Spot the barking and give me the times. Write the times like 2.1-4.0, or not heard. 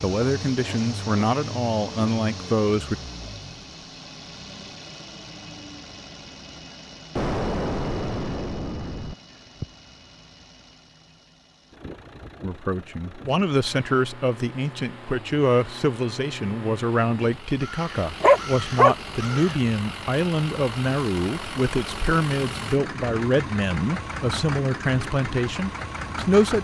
18.2-19.4.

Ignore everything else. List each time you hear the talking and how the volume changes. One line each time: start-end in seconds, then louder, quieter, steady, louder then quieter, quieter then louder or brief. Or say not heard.
0.0-3.0 brief
12.4-26.6 steady.